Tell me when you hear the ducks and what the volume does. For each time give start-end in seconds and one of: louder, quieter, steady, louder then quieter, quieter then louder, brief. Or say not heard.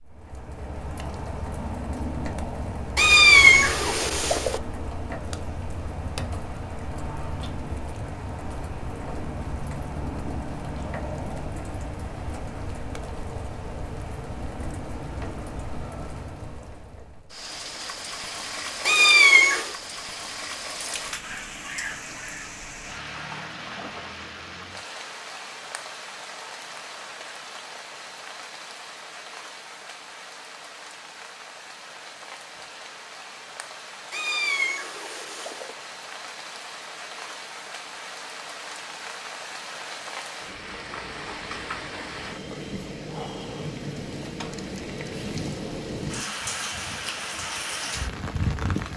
not heard.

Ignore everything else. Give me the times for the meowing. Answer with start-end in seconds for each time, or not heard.
3.0-4.6, 18.9-19.7, 34.1-35.8.